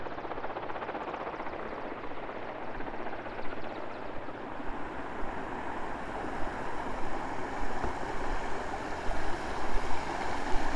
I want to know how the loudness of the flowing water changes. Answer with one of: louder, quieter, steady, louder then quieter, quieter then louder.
louder.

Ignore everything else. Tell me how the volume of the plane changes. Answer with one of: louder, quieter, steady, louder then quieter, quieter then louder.
quieter.